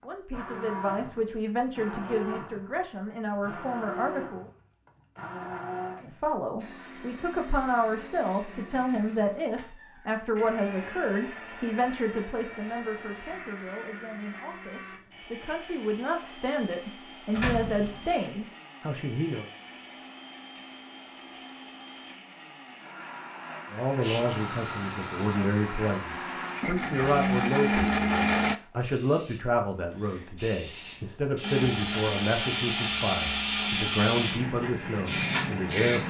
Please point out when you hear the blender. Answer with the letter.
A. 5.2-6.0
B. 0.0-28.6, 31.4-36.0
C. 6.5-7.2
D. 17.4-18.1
B.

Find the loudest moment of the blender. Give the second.
28 s.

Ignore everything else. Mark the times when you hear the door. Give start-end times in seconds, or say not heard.
17.4-18.1.